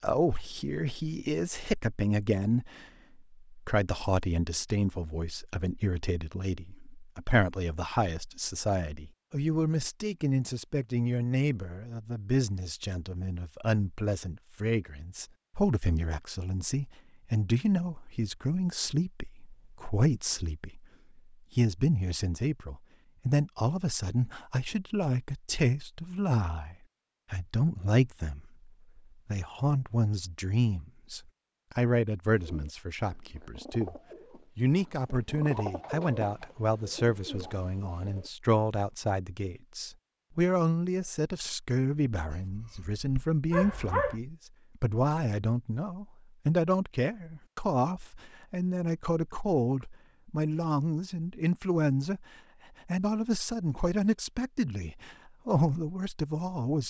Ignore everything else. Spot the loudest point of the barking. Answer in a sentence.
The volume of the barking peaks at 44 seconds.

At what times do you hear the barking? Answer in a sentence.
The barking can be heard from 42.3 to 44.2 s.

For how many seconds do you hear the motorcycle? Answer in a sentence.
The motorcycle can't be heard in this clip.